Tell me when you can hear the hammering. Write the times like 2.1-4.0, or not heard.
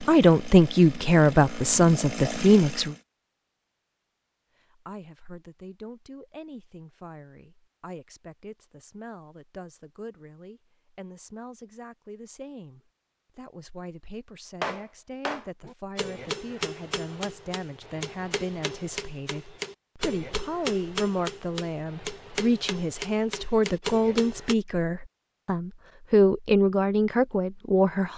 14.6-24.6.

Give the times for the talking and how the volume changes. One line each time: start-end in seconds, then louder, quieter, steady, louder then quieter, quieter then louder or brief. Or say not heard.
0.0-3.0 brief
4.7-28.1 louder.